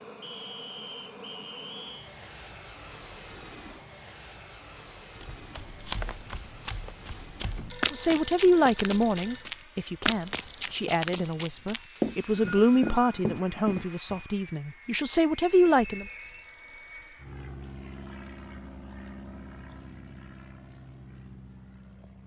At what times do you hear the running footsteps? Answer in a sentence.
You can hear the running footsteps from 5.2 to 14.2 s.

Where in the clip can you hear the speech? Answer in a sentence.
The speech can be heard from 7.9 to 16.1 s.